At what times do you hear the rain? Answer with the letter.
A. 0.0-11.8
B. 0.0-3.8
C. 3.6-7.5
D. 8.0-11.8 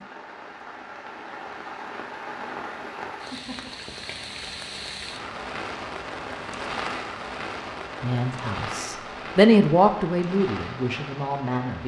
A.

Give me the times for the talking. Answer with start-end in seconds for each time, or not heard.
8.0-11.8.